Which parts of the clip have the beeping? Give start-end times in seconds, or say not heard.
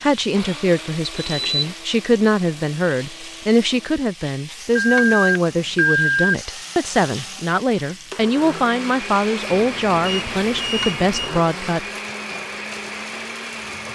1.1-1.7, 4.8-6.3, 9.5-11.4.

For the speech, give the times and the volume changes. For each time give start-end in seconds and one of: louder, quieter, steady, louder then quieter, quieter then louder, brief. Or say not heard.
0.0-11.8 steady.